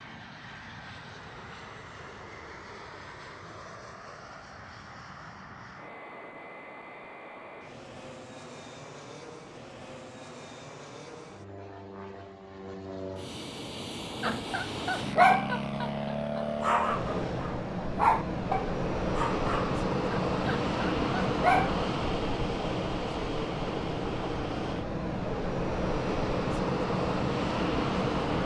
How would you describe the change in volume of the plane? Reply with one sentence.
The volume of the plane goes up.